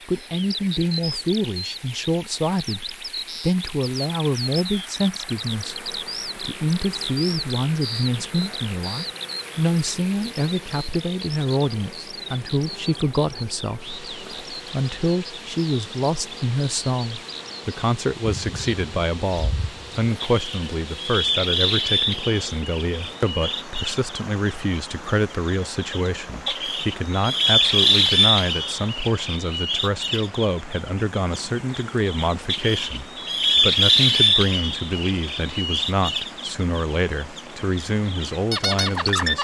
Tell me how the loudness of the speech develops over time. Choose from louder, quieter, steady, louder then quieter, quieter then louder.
steady.